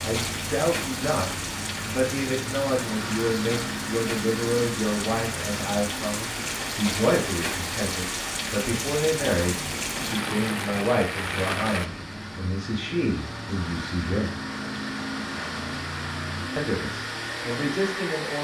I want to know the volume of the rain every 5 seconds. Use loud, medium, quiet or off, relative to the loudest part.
loud, loud, loud, off.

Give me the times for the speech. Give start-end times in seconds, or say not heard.
0.0-14.3, 16.6-18.3.